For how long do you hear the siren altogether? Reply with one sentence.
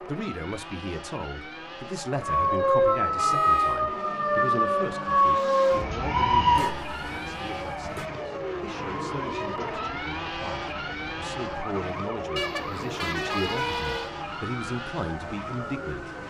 You can hear the siren for 14 seconds altogether.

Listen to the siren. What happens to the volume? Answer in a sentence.
The volume of the siren goes down.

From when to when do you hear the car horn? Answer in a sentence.
You can hear the car horn from 3.1 to 3.8 s, from 6.5 to 8.1 s and from 12.3 to 14.1 s.